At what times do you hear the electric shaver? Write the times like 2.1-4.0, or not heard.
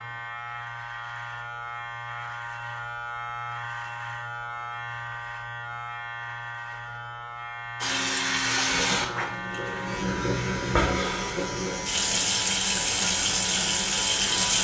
0.0-14.5.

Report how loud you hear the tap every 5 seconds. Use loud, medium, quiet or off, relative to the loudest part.
off, loud, loud.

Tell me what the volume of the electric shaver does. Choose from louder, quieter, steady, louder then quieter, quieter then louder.
steady.